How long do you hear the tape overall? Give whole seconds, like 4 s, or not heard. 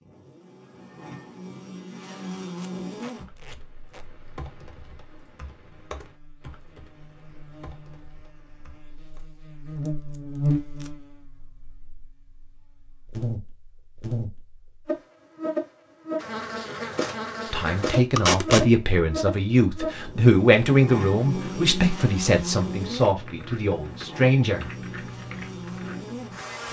3 s.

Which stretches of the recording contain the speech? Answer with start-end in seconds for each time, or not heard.
17.5-24.7.